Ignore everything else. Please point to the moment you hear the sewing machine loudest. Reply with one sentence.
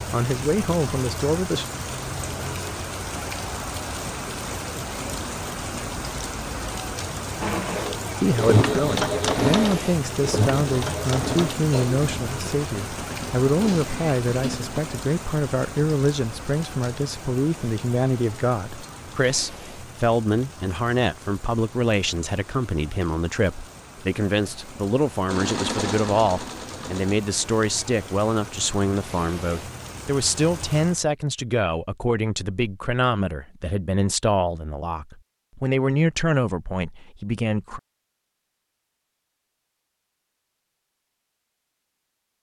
The loudest moment of the sewing machine is at 9 seconds.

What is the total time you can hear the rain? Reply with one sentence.
You can hear the rain for 31 seconds altogether.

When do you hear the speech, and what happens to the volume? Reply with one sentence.
You can hear the speech briefly from 0.0 to 1.6 s; and from 8.2 to 37.8 s, at a steady volume.